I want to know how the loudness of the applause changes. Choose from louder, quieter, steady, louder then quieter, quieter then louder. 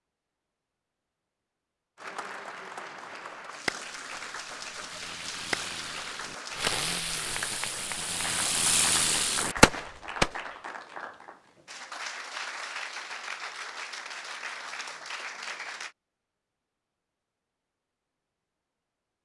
steady.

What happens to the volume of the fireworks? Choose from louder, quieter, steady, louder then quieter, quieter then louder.
louder.